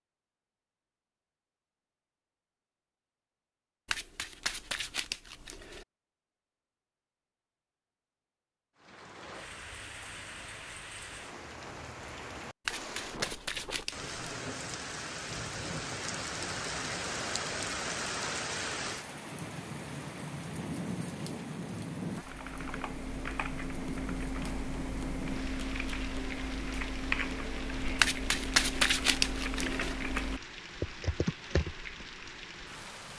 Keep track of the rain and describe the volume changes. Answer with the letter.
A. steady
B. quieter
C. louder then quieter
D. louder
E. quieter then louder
C.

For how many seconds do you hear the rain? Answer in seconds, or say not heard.
24 s.